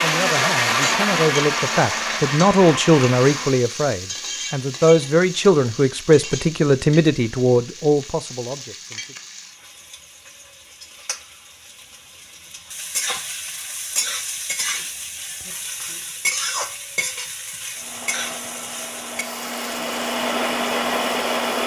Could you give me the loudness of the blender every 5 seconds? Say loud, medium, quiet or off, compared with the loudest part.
loud, off, off, medium, loud.